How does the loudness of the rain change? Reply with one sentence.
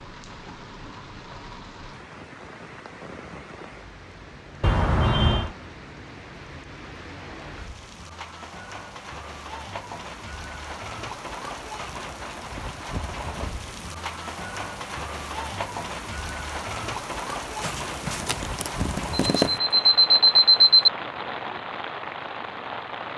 The volume of the rain goes up.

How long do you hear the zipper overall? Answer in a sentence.
You can hear the zipper for 2 seconds altogether.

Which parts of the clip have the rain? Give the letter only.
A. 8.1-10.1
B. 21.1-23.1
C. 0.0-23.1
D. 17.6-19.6
C.